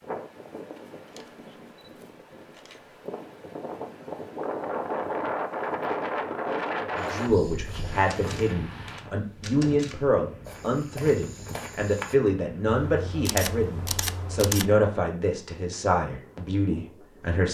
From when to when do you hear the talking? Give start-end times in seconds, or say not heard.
6.8-17.4.